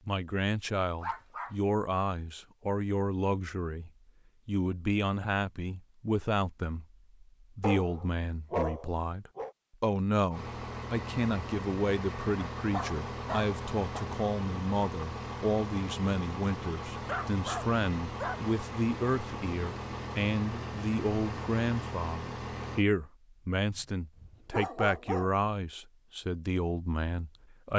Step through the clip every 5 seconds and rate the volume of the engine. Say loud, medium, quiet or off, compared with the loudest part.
off, off, loud, loud, loud, off.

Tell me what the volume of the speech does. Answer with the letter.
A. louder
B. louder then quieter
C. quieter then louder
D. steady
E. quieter
D.